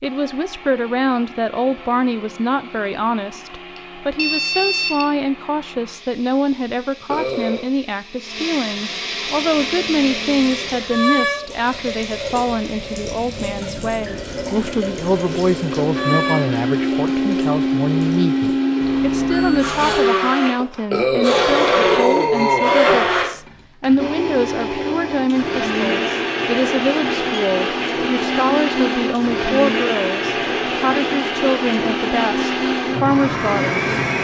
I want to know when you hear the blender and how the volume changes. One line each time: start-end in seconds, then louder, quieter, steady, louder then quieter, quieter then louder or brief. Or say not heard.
0.0-34.1 louder.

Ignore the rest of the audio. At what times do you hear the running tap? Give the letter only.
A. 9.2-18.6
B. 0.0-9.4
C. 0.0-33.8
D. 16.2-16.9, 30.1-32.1
A.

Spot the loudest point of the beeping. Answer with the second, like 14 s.
5 s.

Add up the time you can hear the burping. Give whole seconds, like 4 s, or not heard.
3 s.